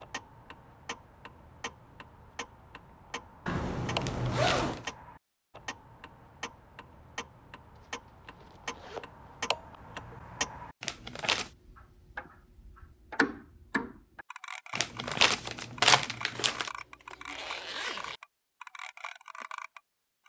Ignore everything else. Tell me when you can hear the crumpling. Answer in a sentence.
You can hear the crumpling from 4.0 to 5.0 s, from 10.8 to 11.5 s and from 14.8 to 16.7 s.